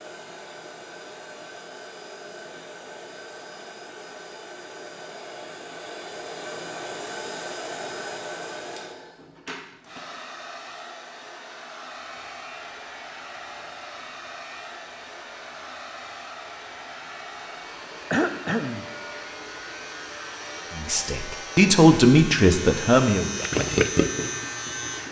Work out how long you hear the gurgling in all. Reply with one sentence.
You can hear the gurgling for 2 seconds altogether.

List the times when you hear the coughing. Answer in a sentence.
You can hear the coughing from 18.1 to 18.9 s.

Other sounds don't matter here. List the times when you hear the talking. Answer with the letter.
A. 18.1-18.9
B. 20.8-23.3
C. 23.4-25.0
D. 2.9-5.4
B.